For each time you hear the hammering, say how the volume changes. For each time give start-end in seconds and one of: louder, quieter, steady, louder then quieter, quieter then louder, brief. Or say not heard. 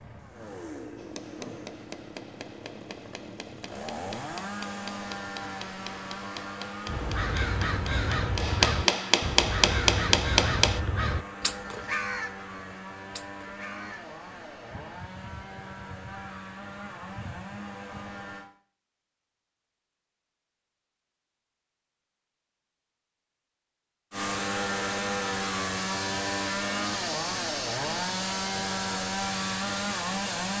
0.9-10.8 louder.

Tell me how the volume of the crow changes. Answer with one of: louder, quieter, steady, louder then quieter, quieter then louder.
quieter.